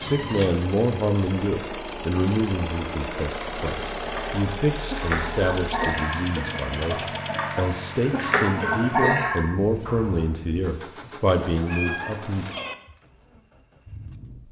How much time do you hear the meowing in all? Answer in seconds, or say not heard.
4 s.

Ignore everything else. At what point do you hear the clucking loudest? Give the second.
9 s.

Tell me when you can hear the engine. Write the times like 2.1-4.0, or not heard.
0.0-14.4.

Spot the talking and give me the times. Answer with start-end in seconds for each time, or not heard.
0.0-12.4.